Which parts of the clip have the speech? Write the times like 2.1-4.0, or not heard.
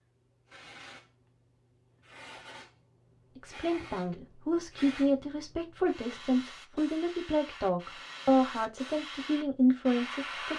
3.4-10.5.